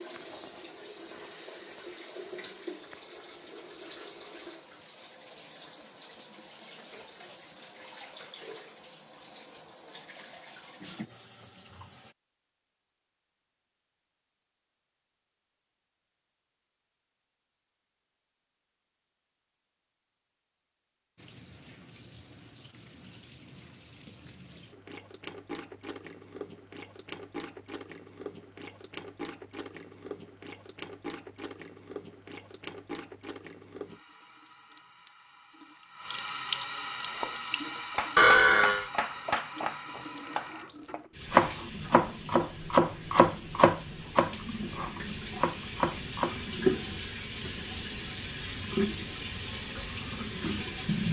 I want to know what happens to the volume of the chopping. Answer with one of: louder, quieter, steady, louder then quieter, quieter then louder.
louder then quieter.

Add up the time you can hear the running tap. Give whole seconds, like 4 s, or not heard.
42 s.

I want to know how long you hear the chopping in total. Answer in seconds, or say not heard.
9 s.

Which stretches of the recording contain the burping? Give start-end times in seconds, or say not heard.
38.1-38.9.